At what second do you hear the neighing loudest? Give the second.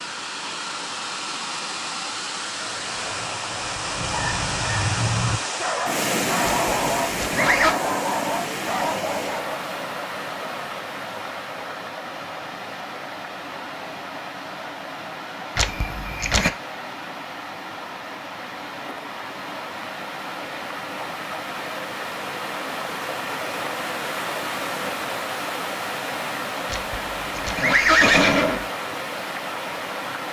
28 s.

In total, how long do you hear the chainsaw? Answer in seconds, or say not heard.
not heard.